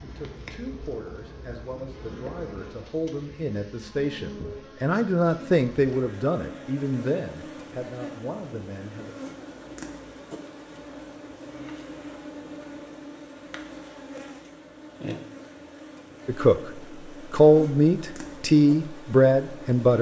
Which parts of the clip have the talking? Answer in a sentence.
The talking can be heard from 0.0 to 9.2 s and from 16.2 to 19.9 s.